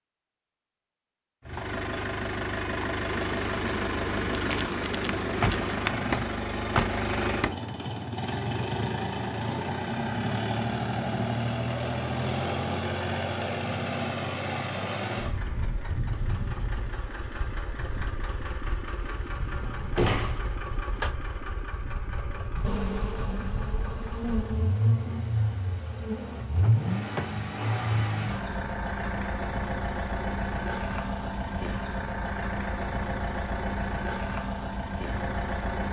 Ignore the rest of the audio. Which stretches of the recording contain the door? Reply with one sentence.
You can hear the door from 5.2 to 7.7 s, from 19.6 to 21.1 s and from 26.6 to 27.4 s.